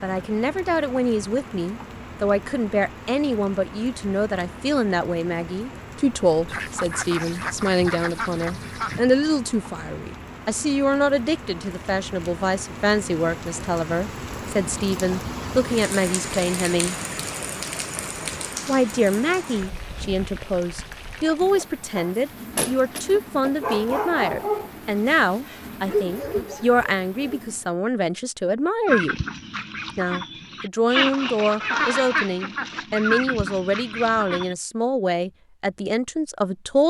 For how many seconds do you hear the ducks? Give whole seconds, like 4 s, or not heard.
8 s.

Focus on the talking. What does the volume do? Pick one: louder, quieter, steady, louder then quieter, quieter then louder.
steady.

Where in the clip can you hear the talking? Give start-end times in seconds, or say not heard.
0.0-16.9, 18.6-29.2, 29.9-36.8.